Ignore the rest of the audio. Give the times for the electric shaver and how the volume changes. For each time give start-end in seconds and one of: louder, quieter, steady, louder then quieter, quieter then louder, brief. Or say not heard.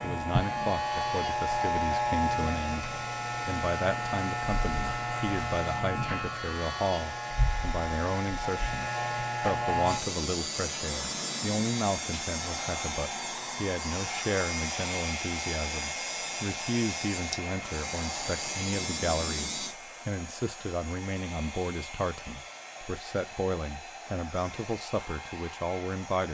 0.0-19.8 quieter.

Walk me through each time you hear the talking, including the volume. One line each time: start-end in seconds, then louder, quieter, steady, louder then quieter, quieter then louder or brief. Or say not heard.
0.0-26.2 steady.